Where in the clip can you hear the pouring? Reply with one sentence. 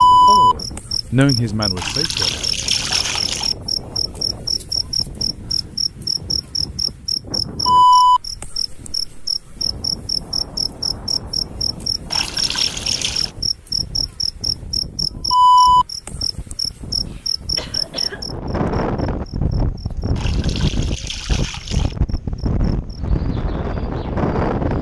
You can hear the pouring from 1.8 to 3.5 s, from 12.1 to 13.3 s and from 20.1 to 21.9 s.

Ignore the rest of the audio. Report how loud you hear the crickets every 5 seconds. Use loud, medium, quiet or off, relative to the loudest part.
loud, loud, medium, loud, quiet.